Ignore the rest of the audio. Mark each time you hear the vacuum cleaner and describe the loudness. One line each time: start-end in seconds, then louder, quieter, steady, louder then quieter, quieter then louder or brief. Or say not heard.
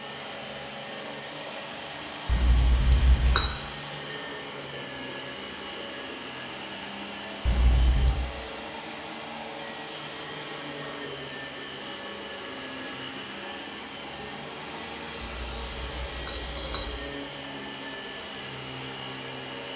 0.0-19.7 steady.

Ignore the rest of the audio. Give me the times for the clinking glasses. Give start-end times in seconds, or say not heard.
2.2-3.5, 7.5-8.2, 15.2-17.1.